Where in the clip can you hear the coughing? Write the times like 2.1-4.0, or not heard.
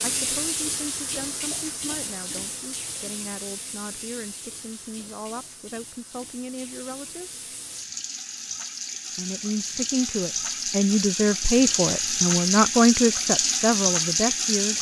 not heard.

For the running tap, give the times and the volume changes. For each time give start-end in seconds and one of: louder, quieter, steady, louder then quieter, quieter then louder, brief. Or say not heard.
0.0-14.7 quieter then louder.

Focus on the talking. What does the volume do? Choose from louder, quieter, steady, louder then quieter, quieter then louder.
louder.